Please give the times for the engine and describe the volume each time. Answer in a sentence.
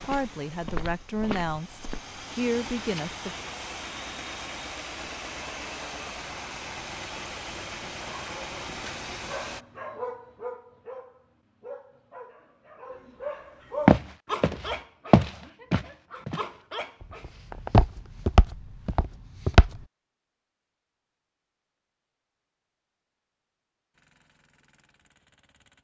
The engine can be heard from 0.0 to 9.7 s, getting louder; and briefly from 23.9 to 25.8 s.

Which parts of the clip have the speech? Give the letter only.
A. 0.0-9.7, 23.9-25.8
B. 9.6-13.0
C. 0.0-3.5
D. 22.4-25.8
C.